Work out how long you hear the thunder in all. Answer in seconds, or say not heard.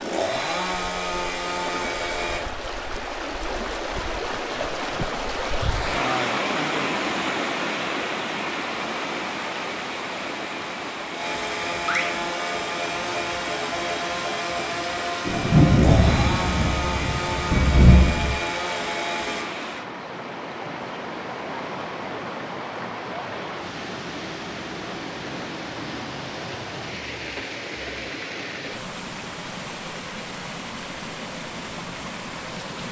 3 s.